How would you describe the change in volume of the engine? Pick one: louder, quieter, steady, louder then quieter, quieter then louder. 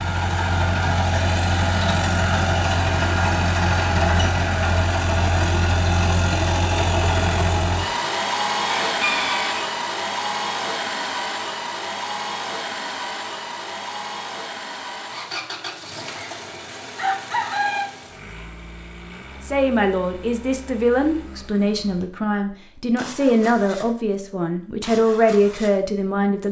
quieter.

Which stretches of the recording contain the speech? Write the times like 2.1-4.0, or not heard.
19.4-26.4.